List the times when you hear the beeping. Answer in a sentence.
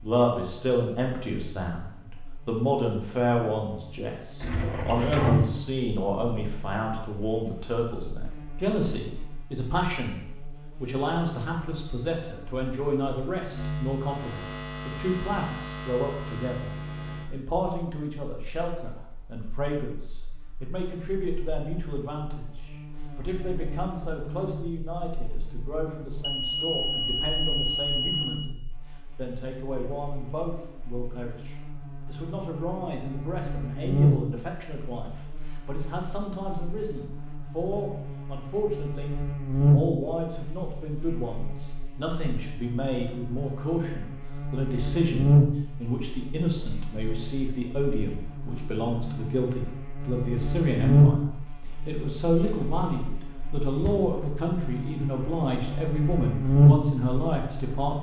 The beeping can be heard from 26.2 to 28.2 s.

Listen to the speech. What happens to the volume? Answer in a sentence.
The loudness of the speech goes down, then up.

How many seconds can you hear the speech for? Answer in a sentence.
You can hear the speech for 57 seconds altogether.